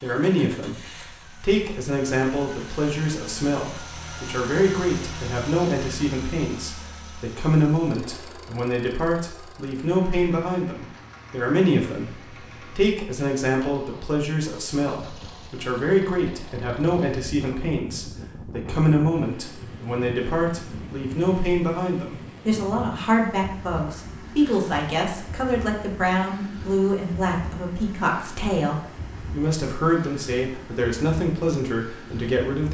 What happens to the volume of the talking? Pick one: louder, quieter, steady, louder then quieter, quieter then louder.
steady.